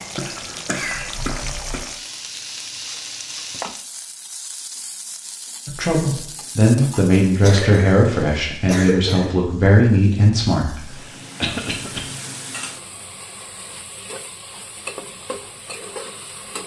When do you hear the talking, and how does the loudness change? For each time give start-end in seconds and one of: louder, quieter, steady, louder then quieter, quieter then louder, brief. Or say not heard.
5.7-11.0 steady.